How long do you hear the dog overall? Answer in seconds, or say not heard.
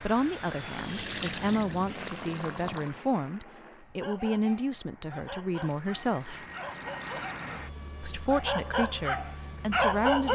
6 s.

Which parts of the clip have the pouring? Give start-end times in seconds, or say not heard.
0.5-2.9, 5.5-7.3.